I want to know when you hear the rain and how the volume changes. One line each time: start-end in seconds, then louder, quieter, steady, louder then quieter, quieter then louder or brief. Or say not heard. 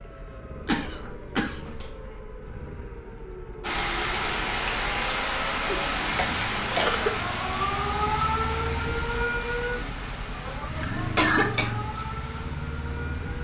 3.6-13.3 quieter.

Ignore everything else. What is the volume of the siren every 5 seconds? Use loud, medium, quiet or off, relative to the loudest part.
quiet, loud, medium.